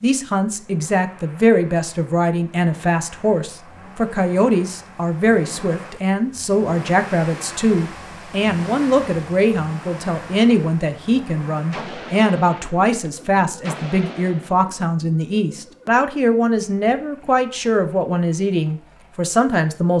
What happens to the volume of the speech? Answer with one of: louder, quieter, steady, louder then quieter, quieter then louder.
steady.